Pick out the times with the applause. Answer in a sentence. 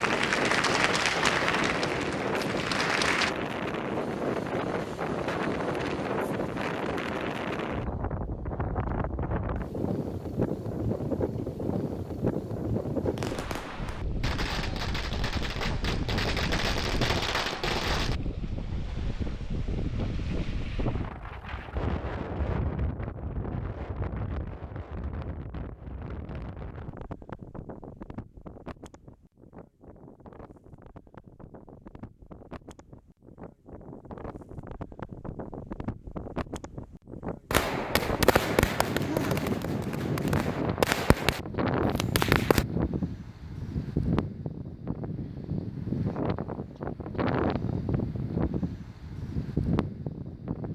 The applause can be heard from 0.0 to 3.3 s.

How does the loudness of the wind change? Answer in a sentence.
The loudness of the wind goes down, then up.